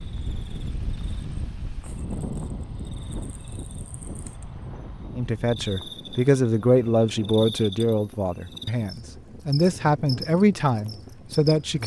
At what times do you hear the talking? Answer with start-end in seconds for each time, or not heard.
5.2-11.8.